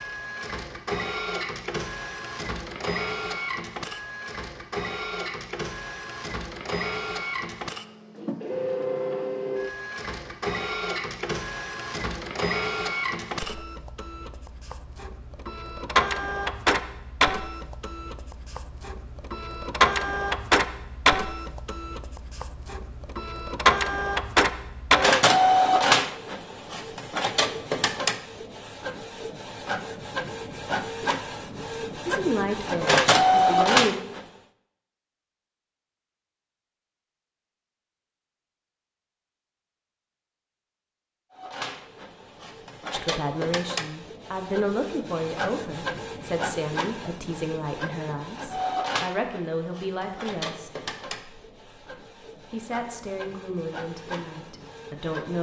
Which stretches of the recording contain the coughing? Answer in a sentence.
You can't hear the coughing here.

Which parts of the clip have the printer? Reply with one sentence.
You can hear the printer from 0.0 to 34.2 s and from 41.3 to 55.3 s.